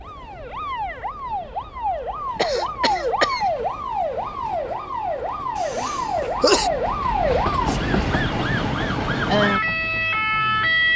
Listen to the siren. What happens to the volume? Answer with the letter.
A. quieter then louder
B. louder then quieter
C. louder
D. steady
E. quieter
C.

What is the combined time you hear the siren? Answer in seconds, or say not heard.
11 s.